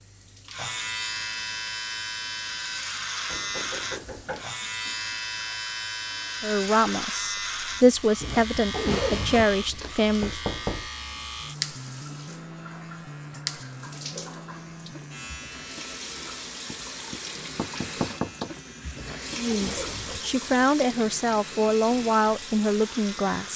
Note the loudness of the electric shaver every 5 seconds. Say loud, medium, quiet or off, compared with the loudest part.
loud, loud, loud, medium, medium.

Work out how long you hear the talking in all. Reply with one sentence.
The talking can be heard for 8 seconds in total.